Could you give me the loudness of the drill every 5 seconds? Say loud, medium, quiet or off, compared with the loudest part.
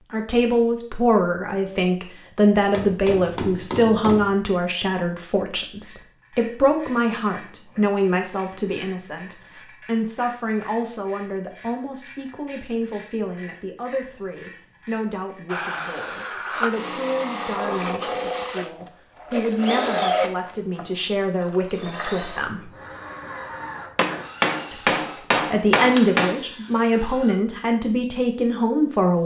off, off, off, loud, loud, quiet.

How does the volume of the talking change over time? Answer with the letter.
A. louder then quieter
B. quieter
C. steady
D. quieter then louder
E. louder
D.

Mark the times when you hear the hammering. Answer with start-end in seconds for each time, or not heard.
2.7-4.3, 23.9-26.4.